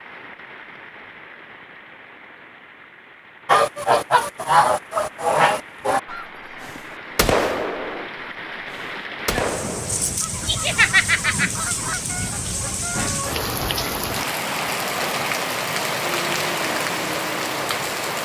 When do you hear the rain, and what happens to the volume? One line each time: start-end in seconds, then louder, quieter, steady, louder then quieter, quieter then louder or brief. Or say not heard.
0.0-18.2 louder.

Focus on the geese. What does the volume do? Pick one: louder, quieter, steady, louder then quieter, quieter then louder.
quieter.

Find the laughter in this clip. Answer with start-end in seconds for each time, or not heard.
10.4-11.5.